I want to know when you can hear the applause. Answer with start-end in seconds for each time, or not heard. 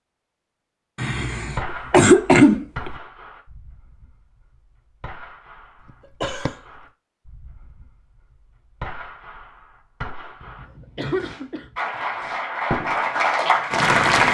11.8-14.2.